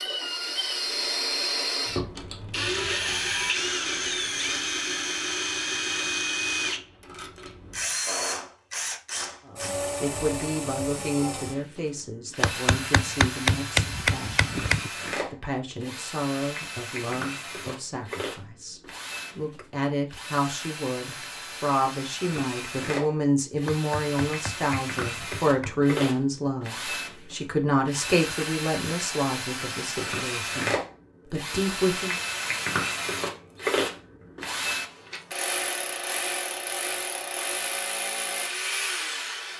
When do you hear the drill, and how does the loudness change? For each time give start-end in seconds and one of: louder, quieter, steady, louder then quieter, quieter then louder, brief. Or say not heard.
0.0-39.5 quieter then louder.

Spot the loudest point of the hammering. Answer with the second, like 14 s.
14 s.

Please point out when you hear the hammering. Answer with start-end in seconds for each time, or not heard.
12.4-14.9, 23.6-25.9.